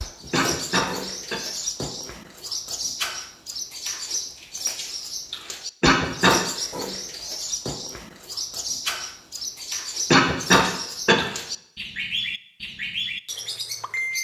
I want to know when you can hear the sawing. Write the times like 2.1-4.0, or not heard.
not heard.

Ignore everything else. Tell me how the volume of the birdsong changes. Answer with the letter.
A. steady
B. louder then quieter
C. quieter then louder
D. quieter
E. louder
A.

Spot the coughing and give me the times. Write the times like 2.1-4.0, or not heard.
0.3-1.4, 5.8-6.4, 10.1-11.2.